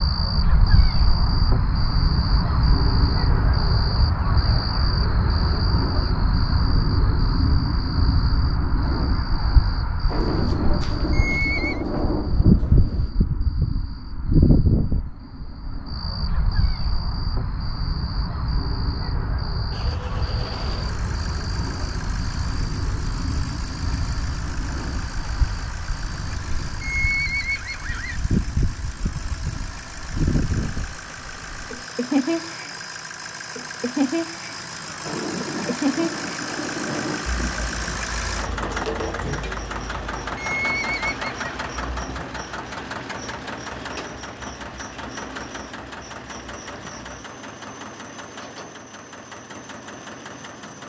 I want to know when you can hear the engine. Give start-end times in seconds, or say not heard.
19.7-50.8.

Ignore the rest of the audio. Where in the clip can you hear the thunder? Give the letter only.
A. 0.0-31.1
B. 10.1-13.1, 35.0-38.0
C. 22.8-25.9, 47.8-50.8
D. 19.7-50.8
B.